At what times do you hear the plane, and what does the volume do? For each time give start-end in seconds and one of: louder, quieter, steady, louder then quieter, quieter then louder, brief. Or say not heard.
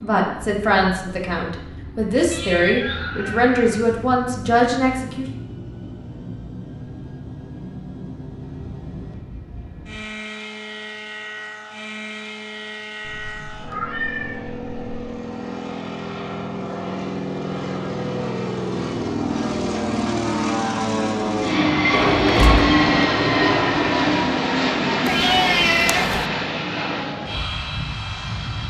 0.0-28.6 louder.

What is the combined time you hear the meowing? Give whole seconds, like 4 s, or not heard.
5 s.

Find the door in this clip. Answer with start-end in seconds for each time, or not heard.
21.9-22.8.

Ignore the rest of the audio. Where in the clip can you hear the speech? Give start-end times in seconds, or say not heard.
0.0-5.2.